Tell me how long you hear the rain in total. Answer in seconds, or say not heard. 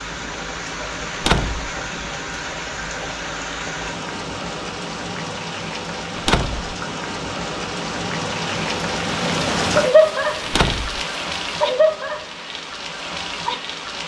14 s.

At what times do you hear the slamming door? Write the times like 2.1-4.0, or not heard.
1.1-1.7, 6.2-6.7, 10.4-11.0.